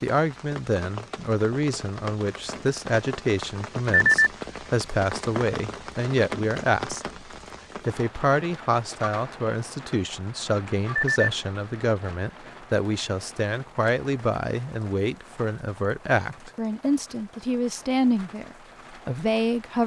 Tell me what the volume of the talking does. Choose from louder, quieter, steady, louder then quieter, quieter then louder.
steady.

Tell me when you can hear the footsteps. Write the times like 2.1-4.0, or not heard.
not heard.